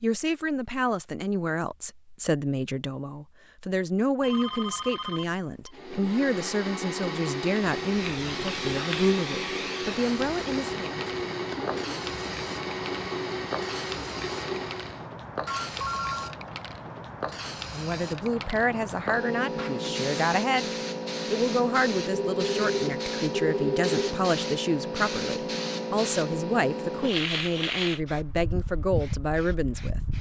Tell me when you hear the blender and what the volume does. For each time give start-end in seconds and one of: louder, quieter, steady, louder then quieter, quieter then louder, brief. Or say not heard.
5.7-15.1 steady.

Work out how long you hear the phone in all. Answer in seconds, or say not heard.
4 s.